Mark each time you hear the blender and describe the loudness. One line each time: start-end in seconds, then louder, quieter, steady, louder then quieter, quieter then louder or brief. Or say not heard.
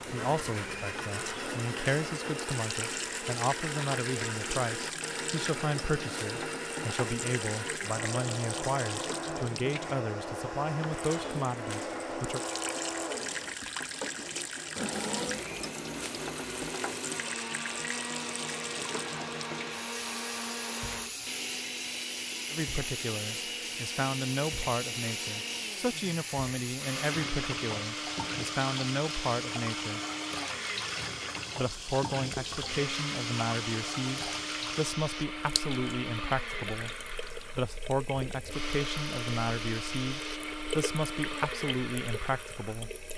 0.0-42.9 steady.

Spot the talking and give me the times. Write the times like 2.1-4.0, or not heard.
0.1-12.4, 22.5-30.0, 31.6-37.0, 37.5-42.9.